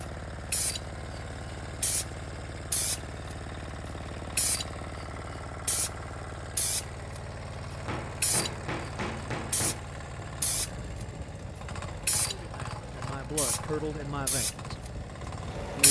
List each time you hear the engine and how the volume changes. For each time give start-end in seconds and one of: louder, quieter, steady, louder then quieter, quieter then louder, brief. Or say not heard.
0.0-15.8 steady.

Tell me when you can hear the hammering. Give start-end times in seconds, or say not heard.
7.8-9.8.